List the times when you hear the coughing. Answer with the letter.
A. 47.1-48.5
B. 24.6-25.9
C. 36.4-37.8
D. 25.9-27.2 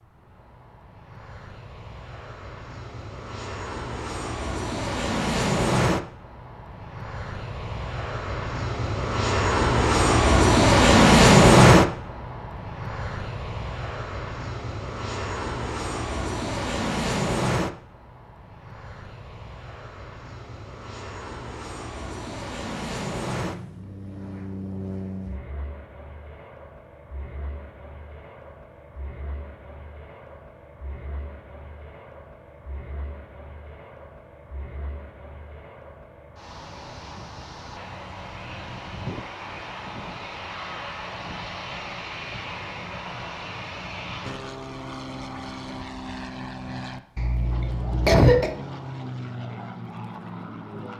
A.